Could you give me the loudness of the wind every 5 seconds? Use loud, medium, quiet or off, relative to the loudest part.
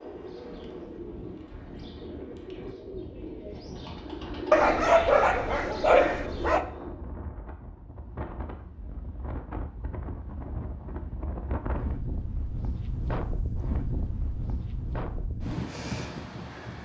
medium, medium, loud, loud.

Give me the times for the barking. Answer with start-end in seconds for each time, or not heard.
4.5-6.7.